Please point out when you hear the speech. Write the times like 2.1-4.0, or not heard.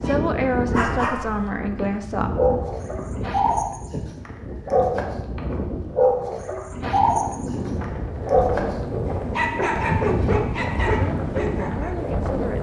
0.0-2.3, 10.9-12.5.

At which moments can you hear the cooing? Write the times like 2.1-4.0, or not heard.
not heard.